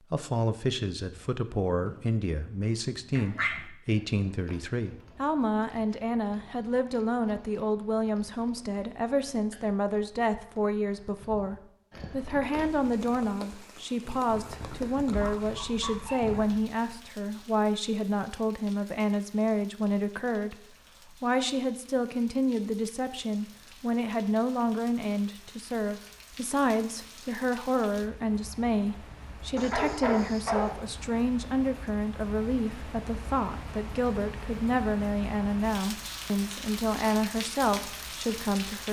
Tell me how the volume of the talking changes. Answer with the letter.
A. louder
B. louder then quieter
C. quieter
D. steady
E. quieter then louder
D.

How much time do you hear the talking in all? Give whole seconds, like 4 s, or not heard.
39 s.